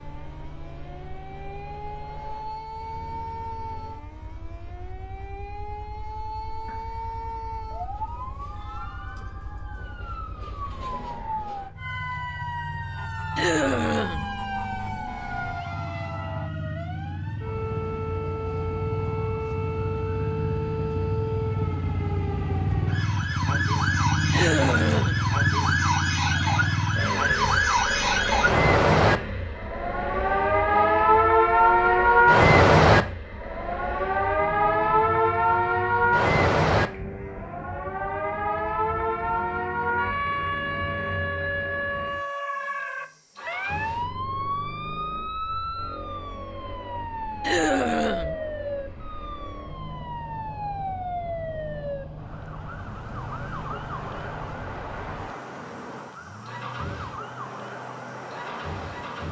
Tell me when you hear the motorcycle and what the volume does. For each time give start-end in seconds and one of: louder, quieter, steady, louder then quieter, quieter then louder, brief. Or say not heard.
0.0-59.2 louder then quieter.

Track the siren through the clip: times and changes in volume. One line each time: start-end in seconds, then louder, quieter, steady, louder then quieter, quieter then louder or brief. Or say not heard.
0.0-59.2 louder then quieter.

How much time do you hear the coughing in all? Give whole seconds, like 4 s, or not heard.
3 s.